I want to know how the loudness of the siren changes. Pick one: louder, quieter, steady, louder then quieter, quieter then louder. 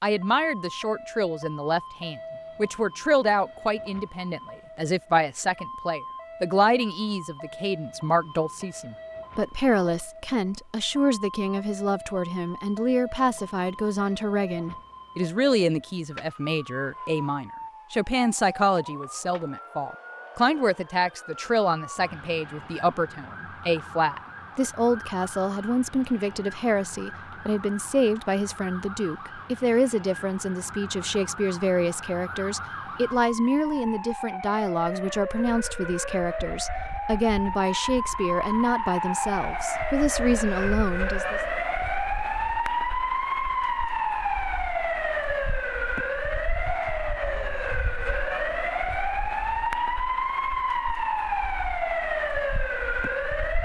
louder.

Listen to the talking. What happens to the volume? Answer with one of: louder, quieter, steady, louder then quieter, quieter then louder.
steady.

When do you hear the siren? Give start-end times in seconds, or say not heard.
0.0-53.5.